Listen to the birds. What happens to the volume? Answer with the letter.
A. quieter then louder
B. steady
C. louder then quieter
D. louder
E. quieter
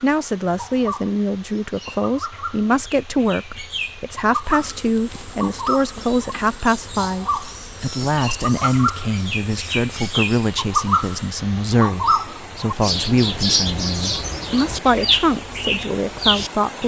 D.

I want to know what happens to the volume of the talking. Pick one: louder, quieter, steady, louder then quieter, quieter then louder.
steady.